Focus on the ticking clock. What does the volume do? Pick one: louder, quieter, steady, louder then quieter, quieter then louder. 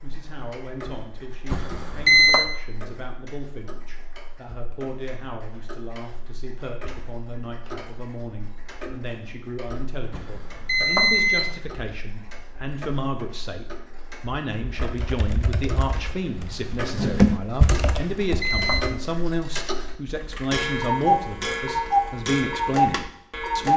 louder.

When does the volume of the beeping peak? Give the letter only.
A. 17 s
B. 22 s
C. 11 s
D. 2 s
D.